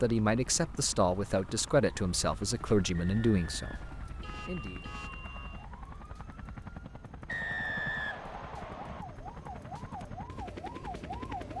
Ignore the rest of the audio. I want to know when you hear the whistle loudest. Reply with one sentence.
The loudest moment of the whistle is at 8 seconds.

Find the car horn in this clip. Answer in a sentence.
You can hear the car horn from 4.2 to 5.7 s.